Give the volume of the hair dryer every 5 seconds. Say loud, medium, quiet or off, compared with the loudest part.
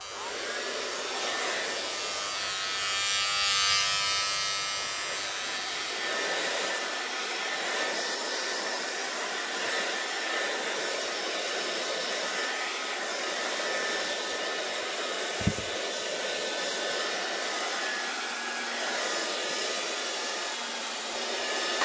medium, loud, loud, loud, loud.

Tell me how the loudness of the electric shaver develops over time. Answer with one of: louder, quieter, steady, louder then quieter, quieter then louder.
louder then quieter.